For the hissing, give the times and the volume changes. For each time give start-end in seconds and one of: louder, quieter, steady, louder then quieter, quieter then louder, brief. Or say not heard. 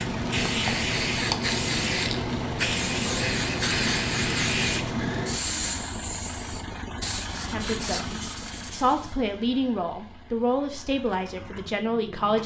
0.0-9.2 quieter.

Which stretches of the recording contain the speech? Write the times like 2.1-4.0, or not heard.
7.4-12.4.